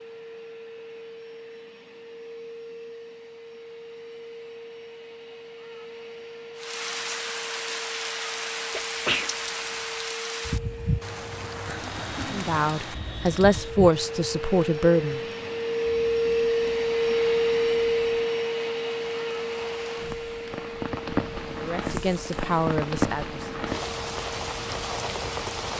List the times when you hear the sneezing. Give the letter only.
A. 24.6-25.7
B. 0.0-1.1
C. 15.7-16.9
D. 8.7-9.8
D.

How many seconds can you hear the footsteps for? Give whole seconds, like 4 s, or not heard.
not heard.